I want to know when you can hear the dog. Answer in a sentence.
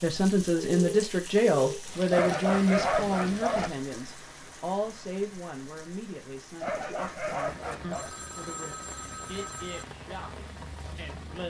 The dog can be heard from 2.1 to 3.7 s and from 6.6 to 8.1 s.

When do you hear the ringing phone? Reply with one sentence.
You can hear the ringing phone from 0.6 to 1.8 s and from 7.8 to 9.8 s.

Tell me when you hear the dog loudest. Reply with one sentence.
The volume of the dog peaks at 3 seconds.